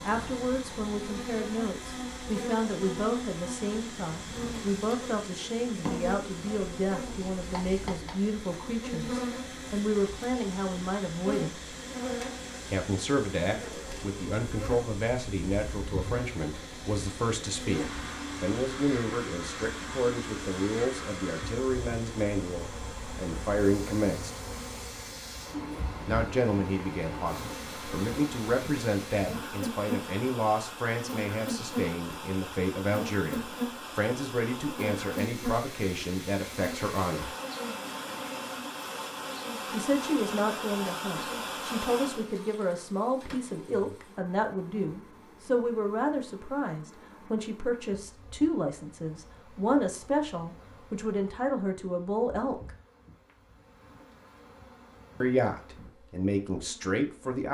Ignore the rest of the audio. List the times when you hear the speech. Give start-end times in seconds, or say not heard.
0.0-11.6, 12.7-24.4, 26.1-37.4, 39.7-52.7, 55.2-57.5.